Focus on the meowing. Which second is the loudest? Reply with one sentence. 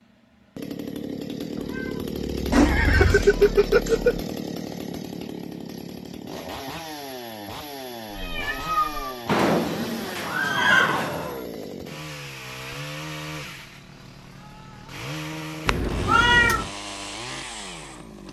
The volume of the meowing peaks at 16 seconds.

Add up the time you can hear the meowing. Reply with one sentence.
The meowing can be heard for 4 seconds in total.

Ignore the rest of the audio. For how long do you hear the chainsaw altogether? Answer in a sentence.
The chainsaw can be heard for 18 seconds in total.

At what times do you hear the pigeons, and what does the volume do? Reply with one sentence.
The pigeons can't be heard in this clip.